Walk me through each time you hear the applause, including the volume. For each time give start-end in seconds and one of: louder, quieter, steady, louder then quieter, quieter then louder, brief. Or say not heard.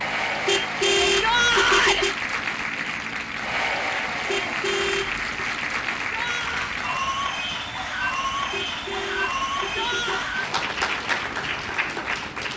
0.0-12.5 steady.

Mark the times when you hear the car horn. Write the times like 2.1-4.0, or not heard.
0.5-2.1, 4.2-5.2, 8.5-10.1.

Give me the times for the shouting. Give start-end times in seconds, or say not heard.
1.1-2.0, 6.0-6.8, 9.6-10.3.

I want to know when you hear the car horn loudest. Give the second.
1 s.